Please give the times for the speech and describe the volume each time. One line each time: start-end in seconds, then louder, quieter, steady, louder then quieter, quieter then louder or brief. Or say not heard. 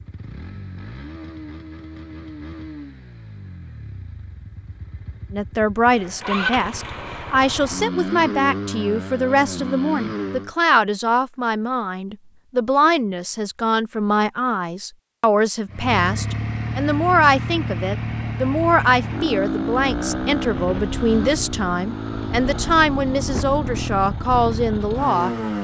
5.3-25.6 steady.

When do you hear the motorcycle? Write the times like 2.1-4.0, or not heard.
0.0-10.6, 15.7-25.6.